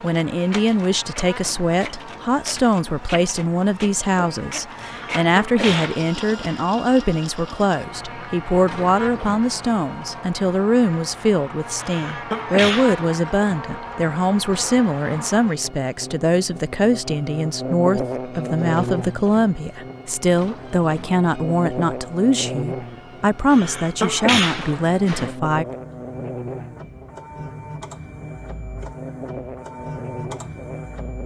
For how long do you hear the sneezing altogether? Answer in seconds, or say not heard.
5 s.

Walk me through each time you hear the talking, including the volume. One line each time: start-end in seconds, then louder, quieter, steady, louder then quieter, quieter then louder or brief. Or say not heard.
0.0-25.6 steady.